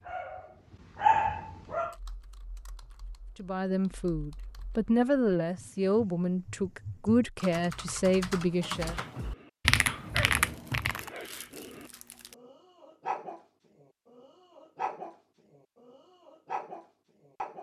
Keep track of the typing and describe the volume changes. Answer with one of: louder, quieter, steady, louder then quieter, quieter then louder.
louder.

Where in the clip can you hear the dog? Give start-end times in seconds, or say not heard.
0.0-1.9, 8.8-17.5.